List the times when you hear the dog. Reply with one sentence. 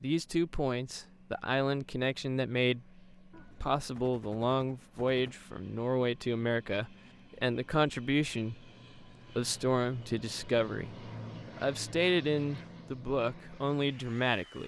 You can't hear the dog here.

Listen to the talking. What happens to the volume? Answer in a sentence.
The loudness of the talking stays about the same.